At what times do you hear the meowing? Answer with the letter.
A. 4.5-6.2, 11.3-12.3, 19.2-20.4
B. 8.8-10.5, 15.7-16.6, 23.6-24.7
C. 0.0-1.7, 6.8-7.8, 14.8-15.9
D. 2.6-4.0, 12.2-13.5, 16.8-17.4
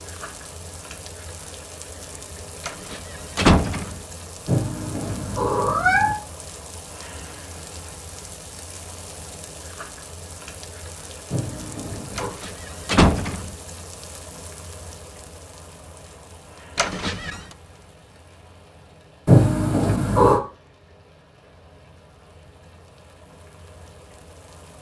A.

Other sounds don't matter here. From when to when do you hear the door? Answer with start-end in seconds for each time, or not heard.
2.6-4.0, 12.2-13.5, 16.8-17.4.